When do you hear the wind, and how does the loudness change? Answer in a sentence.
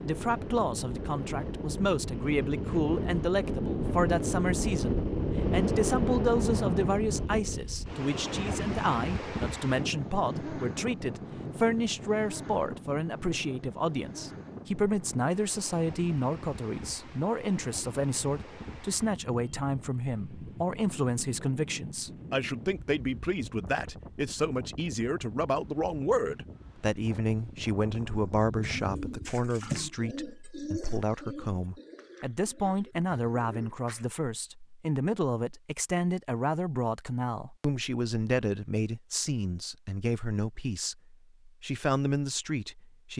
You can hear the wind from 0.0 to 29.2 s, getting quieter.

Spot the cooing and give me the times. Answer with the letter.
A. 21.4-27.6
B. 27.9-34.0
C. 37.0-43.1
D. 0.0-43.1
B.